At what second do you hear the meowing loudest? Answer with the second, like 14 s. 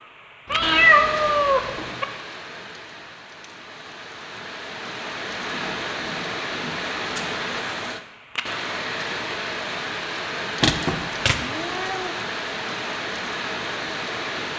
1 s.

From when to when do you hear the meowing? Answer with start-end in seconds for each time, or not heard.
0.5-2.0, 10.6-12.1.